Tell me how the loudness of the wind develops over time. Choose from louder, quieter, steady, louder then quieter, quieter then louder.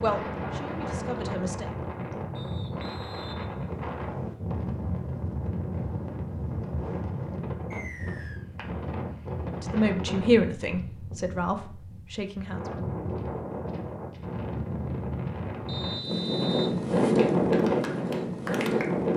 louder.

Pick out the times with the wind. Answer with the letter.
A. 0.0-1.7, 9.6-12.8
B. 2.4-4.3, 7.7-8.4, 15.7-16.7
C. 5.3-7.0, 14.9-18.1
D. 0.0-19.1
D.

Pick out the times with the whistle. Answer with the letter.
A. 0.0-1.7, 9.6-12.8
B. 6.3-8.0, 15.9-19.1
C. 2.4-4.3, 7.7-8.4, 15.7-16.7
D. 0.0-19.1
C.